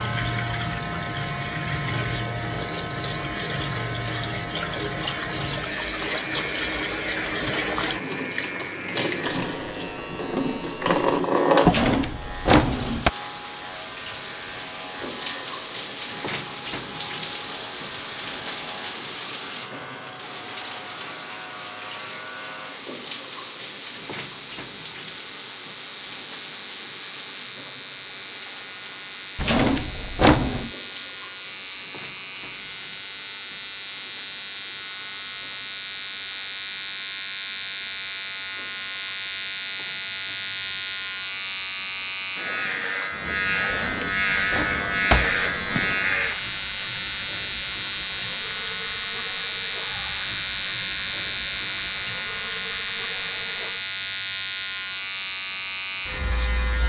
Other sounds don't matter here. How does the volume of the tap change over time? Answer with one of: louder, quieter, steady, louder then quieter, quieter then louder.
quieter then louder.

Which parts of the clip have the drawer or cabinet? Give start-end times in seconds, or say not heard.
11.7-13.1, 29.4-30.7, 43.7-46.0.